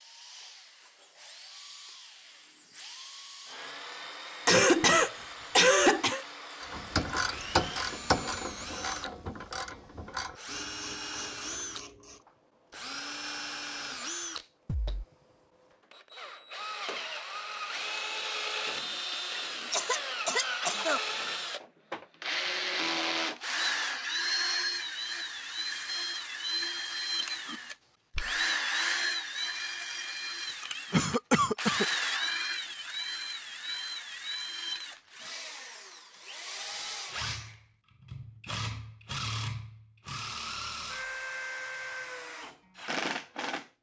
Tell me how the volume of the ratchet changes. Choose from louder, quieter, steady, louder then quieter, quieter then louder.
quieter.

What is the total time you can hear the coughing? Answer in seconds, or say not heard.
5 s.